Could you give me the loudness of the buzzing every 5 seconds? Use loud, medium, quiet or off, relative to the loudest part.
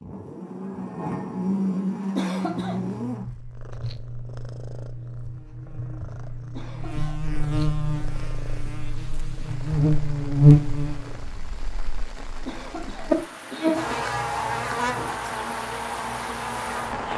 medium, medium, loud, medium.